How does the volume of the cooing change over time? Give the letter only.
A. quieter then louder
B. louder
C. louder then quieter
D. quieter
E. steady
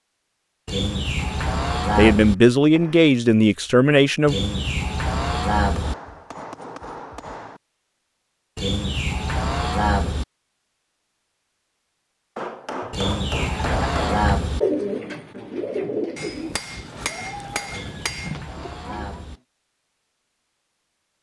D.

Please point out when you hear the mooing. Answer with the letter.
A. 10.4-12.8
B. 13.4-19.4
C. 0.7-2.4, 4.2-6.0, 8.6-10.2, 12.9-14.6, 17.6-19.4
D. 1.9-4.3
C.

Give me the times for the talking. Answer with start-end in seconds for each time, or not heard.
1.9-4.3.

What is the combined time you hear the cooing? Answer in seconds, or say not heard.
6 s.